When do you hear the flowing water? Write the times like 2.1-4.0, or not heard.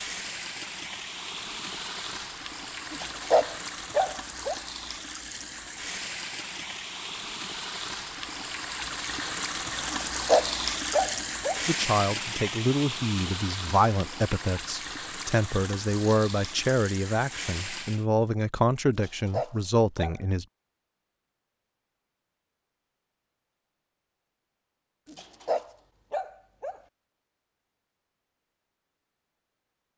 0.0-18.1.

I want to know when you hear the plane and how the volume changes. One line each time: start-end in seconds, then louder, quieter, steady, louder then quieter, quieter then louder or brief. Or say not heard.
not heard.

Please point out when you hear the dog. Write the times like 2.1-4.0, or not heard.
2.9-4.5, 9.9-11.6, 18.9-20.2, 25.1-26.8.